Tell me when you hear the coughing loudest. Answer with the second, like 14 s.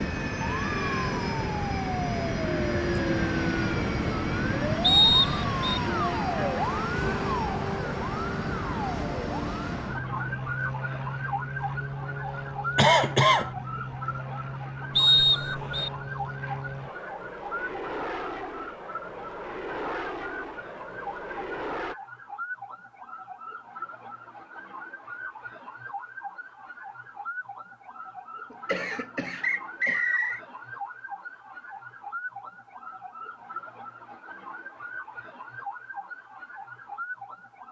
13 s.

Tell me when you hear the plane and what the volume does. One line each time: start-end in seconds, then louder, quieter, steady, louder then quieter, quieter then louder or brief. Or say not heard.
0.0-21.9 quieter.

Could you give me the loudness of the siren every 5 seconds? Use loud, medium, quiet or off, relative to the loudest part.
loud, loud, loud, medium, medium, medium, medium, medium.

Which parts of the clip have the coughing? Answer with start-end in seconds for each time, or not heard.
12.8-13.5, 28.5-30.1.